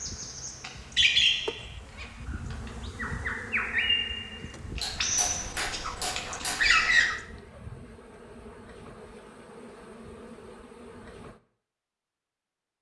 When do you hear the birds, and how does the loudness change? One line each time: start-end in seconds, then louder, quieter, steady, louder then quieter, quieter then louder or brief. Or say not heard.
0.0-7.2 quieter then louder.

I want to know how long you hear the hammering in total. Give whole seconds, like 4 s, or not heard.
2 s.